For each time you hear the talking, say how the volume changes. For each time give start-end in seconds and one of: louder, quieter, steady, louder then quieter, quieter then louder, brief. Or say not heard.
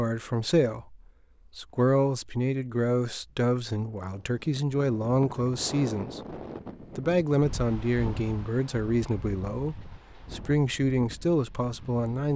0.0-12.3 steady.